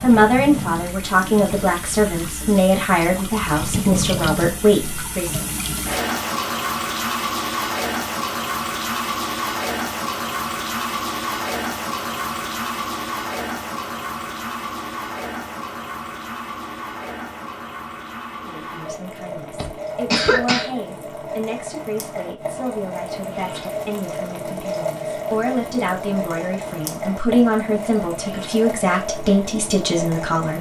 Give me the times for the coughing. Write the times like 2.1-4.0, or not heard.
19.6-20.7.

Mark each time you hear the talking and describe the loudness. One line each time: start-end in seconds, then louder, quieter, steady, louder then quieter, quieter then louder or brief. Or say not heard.
0.0-5.5 steady
18.4-30.5 louder.